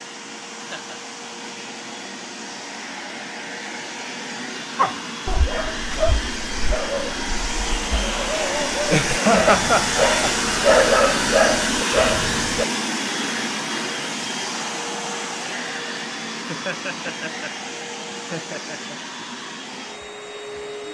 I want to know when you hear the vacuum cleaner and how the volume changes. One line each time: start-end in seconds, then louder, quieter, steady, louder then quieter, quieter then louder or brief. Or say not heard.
0.0-20.8 louder then quieter.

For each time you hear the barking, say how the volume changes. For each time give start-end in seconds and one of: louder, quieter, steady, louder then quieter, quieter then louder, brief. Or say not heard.
4.8-12.7 louder.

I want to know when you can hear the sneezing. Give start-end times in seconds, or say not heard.
not heard.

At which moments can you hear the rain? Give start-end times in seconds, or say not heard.
not heard.